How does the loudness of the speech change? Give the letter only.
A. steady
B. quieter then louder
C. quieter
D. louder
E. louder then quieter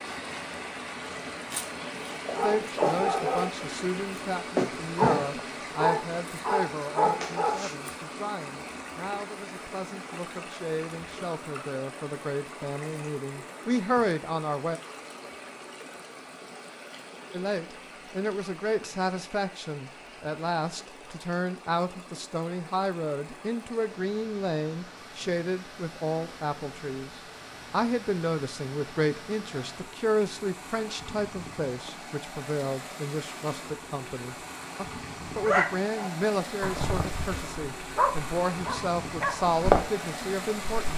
A.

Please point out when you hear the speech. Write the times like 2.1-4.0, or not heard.
2.4-14.8, 17.3-40.9.